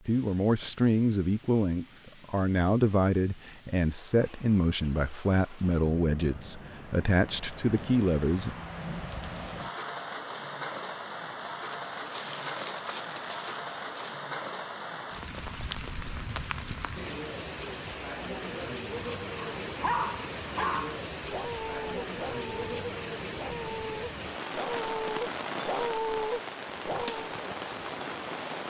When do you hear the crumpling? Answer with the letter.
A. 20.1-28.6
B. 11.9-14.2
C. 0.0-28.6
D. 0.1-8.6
B.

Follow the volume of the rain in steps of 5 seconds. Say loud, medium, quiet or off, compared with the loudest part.
quiet, medium, loud, loud, loud, loud.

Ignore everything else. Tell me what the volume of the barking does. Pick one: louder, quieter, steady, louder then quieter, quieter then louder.
quieter then louder.